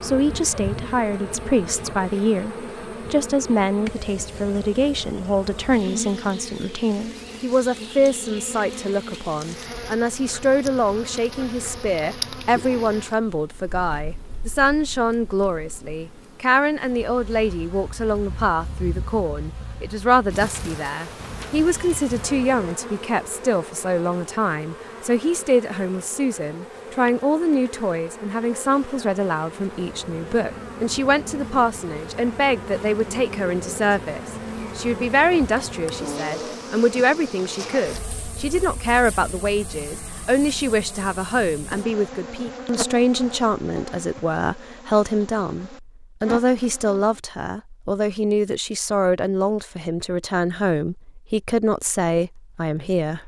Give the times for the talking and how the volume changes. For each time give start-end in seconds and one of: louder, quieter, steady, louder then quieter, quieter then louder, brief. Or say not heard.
0.0-53.2 steady.